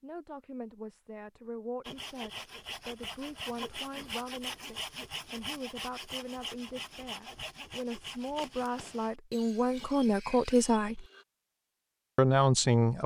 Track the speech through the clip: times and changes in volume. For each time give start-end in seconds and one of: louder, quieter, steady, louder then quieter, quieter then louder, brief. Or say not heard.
0.0-11.1 louder
12.2-13.0 brief.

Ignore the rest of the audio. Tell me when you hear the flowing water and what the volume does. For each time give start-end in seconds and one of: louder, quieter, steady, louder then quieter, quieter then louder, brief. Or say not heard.
not heard.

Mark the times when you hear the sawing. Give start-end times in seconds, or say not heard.
1.8-11.2.